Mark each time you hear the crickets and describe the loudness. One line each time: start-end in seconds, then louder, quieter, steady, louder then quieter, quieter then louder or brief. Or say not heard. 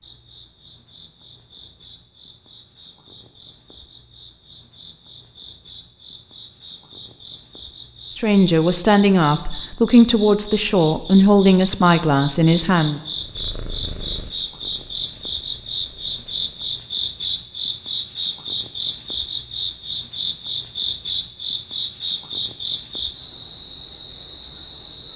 0.0-25.1 louder.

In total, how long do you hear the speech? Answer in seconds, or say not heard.
5 s.